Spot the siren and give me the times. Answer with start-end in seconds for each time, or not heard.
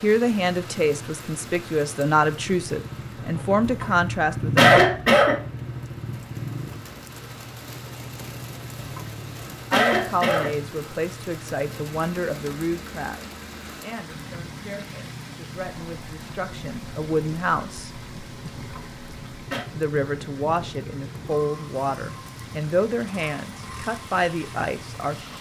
not heard.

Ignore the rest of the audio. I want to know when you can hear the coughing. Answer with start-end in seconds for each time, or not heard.
3.6-5.4, 8.8-10.6, 18.6-19.6.